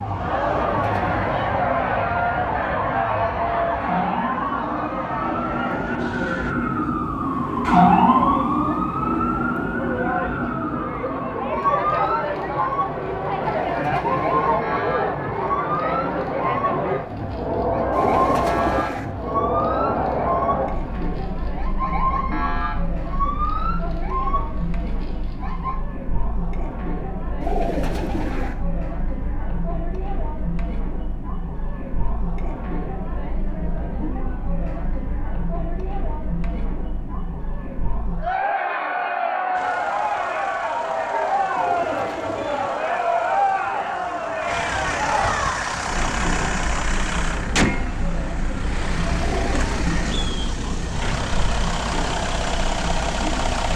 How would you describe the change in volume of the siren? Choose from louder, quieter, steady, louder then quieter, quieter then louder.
louder then quieter.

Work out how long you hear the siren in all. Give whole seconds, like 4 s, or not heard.
26 s.